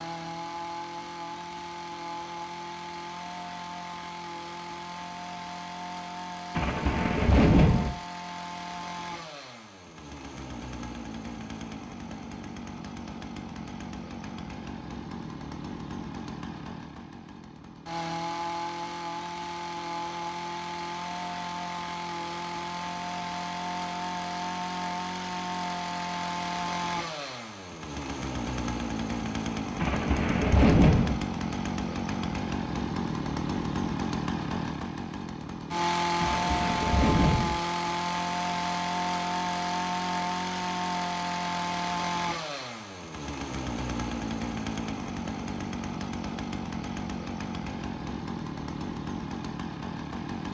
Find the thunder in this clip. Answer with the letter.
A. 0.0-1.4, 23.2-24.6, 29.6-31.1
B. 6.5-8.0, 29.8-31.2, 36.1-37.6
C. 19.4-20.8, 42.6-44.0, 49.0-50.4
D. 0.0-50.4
B.